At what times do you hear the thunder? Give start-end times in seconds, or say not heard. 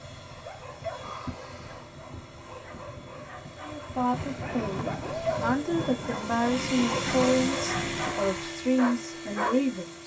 4.1-8.2.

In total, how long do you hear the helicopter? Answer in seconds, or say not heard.
10 s.